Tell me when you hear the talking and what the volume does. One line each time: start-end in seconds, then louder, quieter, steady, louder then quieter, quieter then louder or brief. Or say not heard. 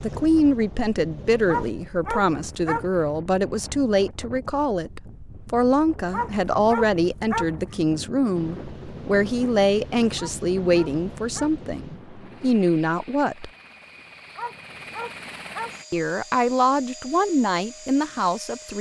0.0-13.5 steady
15.9-18.7 brief.